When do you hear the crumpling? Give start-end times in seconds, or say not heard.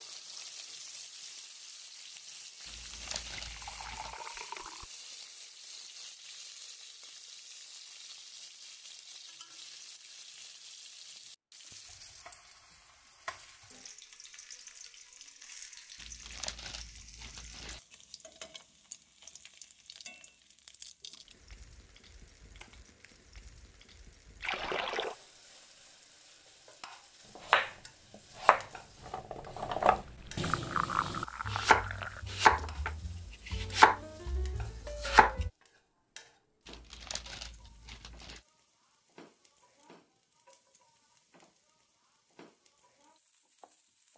2.6-4.2, 15.9-17.8, 36.6-38.4.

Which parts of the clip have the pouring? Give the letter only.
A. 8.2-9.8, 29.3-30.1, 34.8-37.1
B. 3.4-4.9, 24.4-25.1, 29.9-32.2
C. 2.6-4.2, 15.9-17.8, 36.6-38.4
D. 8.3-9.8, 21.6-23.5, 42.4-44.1
B.